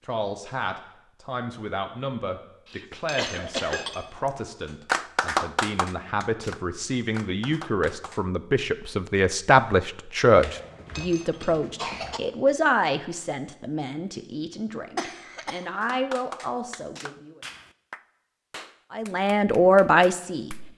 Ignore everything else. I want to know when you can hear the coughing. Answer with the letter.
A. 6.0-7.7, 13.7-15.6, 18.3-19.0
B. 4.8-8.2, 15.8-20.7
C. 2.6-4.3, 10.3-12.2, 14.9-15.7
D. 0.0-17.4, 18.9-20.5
C.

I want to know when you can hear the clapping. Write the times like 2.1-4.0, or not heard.
4.8-8.2, 15.8-20.7.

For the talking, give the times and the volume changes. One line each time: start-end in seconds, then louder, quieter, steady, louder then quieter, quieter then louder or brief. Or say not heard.
0.0-17.4 louder then quieter
18.9-20.5 brief.